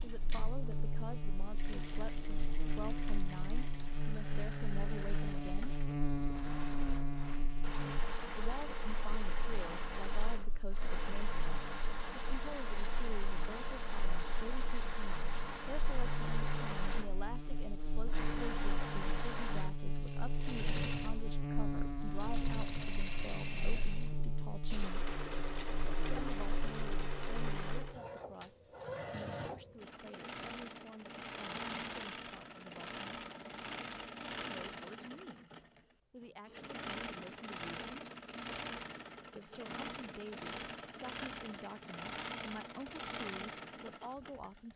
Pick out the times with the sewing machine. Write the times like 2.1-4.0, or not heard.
0.0-44.7.